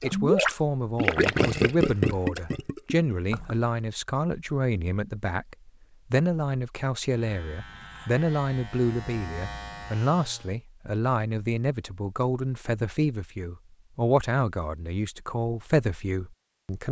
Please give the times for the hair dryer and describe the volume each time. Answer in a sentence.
The hair dryer can't be heard in this clip.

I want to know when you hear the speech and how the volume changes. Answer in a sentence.
You can hear the speech from 0.0 to 16.8 s, at a steady volume.